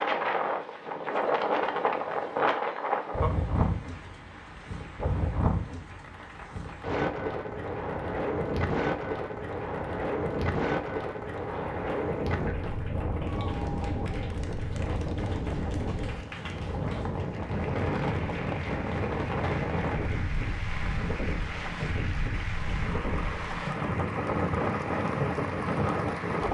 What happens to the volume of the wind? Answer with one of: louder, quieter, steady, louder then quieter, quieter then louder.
steady.